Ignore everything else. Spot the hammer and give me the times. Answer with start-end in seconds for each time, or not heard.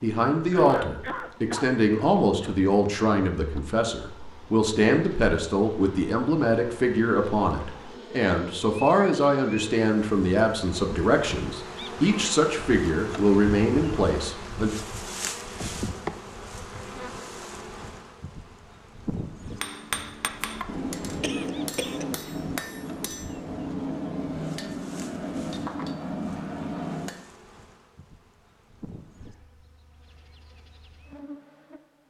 19.4-27.2.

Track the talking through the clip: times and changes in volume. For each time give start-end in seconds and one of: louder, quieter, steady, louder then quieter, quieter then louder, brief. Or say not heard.
0.0-14.7 steady.